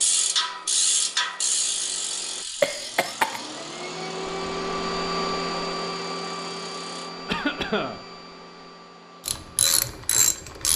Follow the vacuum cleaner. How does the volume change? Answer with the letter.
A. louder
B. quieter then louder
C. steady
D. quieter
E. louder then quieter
E.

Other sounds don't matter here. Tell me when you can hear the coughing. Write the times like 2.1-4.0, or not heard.
2.6-3.4, 7.2-8.0.